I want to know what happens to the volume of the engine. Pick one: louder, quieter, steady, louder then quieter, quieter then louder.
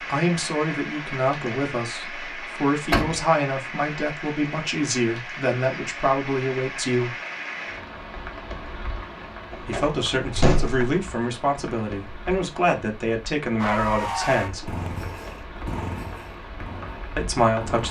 quieter.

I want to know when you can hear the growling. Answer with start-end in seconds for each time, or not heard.
not heard.